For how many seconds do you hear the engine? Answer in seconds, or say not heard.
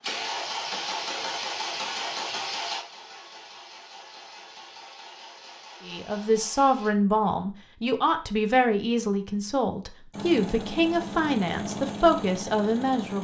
10 s.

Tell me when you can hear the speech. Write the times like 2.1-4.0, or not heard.
5.8-13.2.